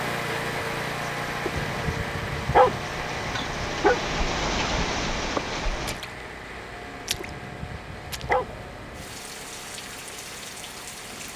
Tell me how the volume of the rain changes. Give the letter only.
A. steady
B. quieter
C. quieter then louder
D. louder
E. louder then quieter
E.